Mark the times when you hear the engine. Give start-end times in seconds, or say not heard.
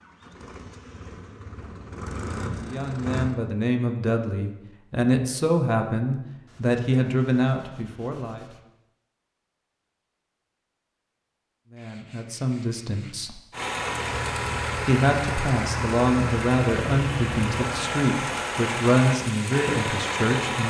0.0-3.4, 13.5-20.6.